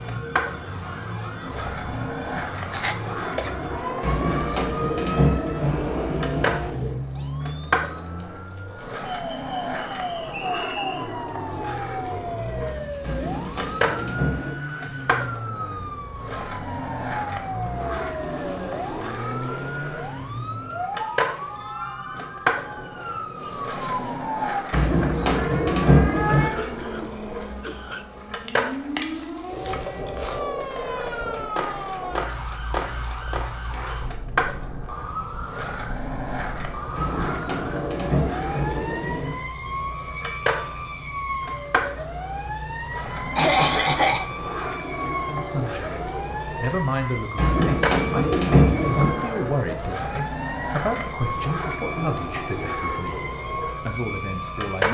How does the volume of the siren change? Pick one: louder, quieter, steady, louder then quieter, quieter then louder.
steady.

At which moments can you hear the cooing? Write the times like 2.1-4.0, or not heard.
4.0-7.0, 13.0-14.6, 24.7-26.5, 37.0-39.4, 47.4-49.2.